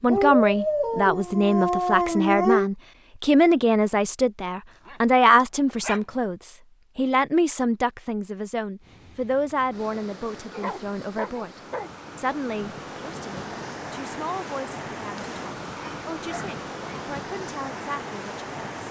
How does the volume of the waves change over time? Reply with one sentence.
The volume of the waves goes up.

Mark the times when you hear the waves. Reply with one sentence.
You can hear the waves from 8.8 to 18.8 s.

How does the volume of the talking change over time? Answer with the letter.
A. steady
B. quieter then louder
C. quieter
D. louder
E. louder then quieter
C.